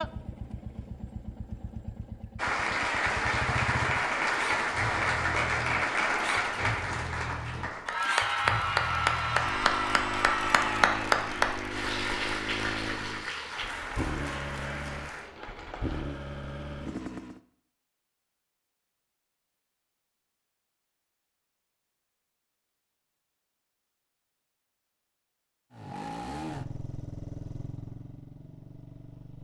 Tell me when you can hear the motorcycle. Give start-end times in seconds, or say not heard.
0.0-17.4, 25.7-29.3.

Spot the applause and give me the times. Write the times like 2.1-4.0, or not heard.
2.4-16.1.